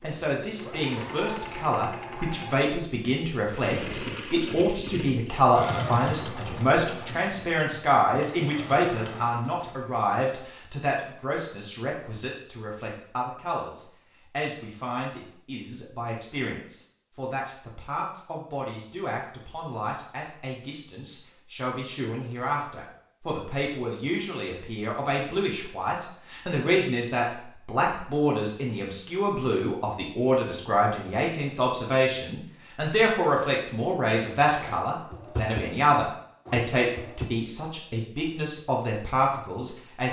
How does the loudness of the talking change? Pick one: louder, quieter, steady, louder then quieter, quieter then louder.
quieter then louder.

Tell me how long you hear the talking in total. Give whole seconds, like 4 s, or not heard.
40 s.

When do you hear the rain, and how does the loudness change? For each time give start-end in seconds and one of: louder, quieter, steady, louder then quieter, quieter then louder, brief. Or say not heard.
not heard.